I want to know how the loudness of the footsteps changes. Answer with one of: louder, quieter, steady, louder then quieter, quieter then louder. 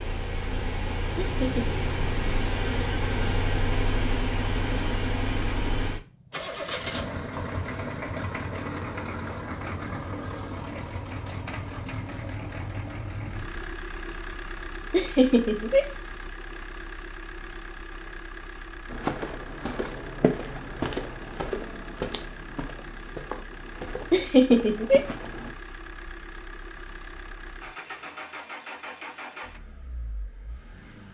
quieter.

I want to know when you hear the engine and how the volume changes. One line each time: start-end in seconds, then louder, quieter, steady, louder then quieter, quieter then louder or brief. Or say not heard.
0.0-31.0 quieter.